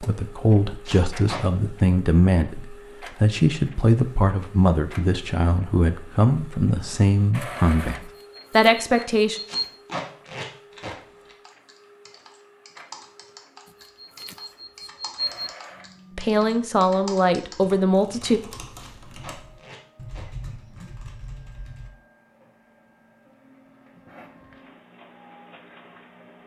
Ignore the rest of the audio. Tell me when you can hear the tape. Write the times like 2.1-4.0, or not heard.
0.8-1.4, 9.4-10.9, 18.8-20.2.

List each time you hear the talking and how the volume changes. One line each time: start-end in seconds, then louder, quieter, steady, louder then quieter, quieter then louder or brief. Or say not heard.
0.0-9.4 steady
16.1-18.4 brief.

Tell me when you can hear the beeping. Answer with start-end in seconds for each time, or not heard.
8.2-9.7, 13.8-15.5.